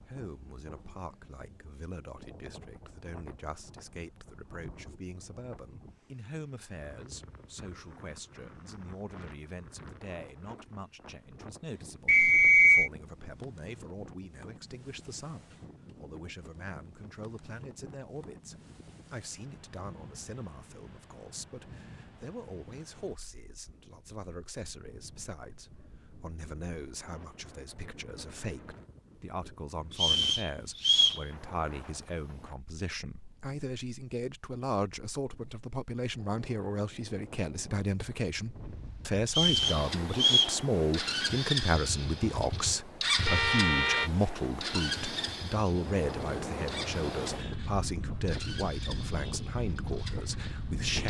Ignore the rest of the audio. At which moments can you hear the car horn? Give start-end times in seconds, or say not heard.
43.2-44.1.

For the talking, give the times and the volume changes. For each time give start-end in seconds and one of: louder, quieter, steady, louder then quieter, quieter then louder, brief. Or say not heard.
0.0-51.0 louder.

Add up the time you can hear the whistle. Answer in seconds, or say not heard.
3 s.